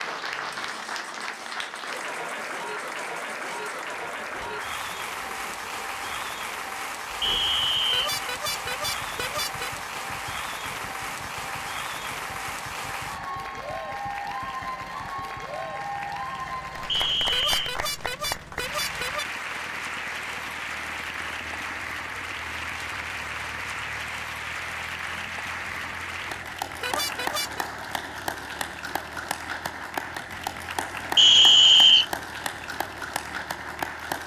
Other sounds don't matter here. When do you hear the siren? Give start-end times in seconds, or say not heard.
not heard.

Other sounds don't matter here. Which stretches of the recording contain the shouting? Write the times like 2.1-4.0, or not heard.
not heard.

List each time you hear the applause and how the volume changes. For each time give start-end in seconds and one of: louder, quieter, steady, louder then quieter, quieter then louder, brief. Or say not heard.
0.0-34.2 steady.